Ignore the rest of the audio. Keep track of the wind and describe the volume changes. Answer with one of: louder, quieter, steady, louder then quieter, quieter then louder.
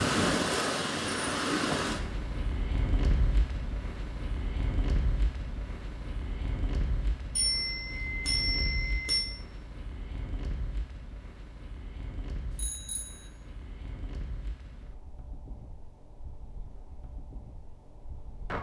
quieter.